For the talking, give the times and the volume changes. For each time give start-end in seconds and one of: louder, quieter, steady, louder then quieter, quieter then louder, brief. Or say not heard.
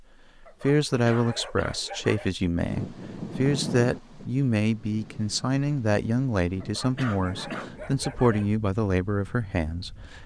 0.4-10.2 steady.